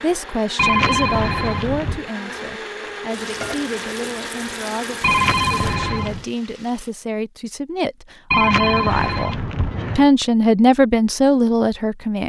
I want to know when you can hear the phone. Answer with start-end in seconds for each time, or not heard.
0.6-2.0, 5.0-6.2, 8.3-10.1.